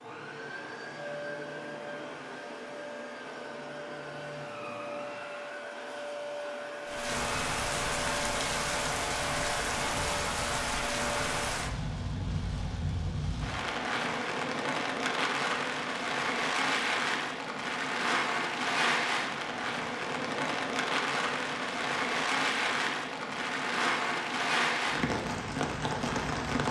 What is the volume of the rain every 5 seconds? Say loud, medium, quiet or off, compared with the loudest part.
off, loud, loud, loud, loud, loud.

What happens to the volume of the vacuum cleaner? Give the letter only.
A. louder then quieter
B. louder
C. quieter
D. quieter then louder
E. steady
E.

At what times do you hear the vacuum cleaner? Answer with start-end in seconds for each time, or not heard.
0.0-11.4.